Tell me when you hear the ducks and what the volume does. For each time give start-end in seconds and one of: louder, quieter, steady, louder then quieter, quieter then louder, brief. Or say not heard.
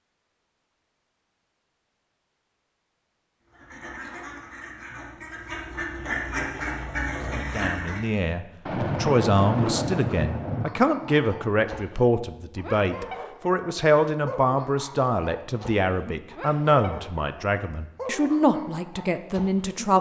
3.5-8.0 louder.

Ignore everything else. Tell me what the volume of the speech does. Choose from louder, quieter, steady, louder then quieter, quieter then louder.
steady.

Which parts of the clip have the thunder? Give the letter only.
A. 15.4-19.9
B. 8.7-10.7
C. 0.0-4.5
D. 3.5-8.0
B.